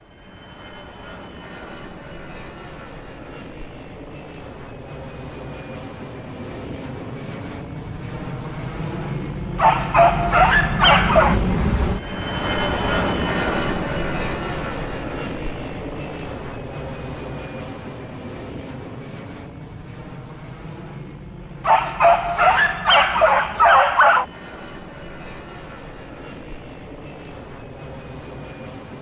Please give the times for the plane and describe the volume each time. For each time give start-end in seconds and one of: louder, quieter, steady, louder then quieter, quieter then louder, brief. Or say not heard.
0.0-28.9 louder then quieter.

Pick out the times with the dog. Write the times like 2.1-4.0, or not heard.
9.6-11.4, 21.6-24.2.